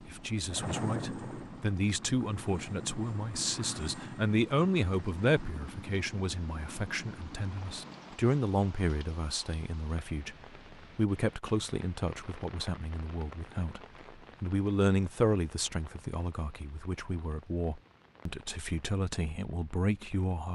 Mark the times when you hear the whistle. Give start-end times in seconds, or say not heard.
not heard.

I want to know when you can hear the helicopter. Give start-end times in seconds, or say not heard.
0.0-8.2.